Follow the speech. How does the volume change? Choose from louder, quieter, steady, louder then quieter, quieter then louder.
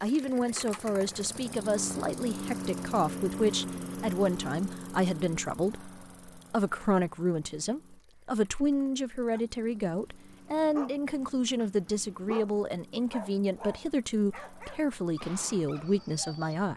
steady.